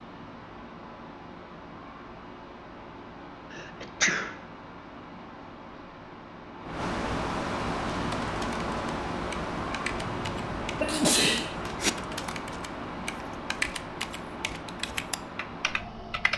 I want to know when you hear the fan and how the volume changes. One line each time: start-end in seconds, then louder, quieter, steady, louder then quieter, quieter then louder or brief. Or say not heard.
0.0-16.3 louder then quieter.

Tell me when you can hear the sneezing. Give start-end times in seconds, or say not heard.
3.5-4.4, 10.1-11.9.